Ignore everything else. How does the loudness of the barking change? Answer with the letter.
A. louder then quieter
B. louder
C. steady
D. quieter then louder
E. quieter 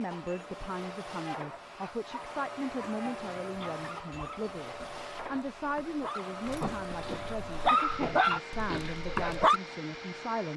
B.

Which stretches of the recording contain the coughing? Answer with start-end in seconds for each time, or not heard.
not heard.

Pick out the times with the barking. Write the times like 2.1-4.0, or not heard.
1.2-9.6.